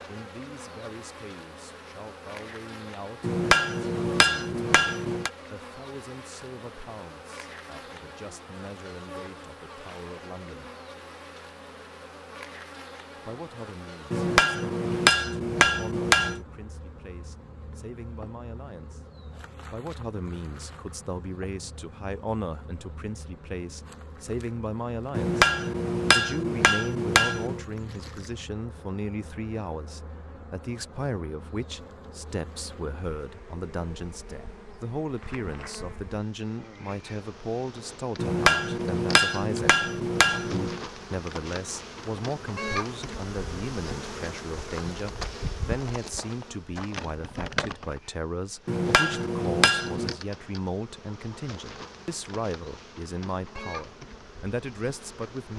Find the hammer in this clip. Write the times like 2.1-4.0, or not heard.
3.2-5.3, 14.1-16.4, 25.1-27.6, 38.1-40.8, 48.6-50.1.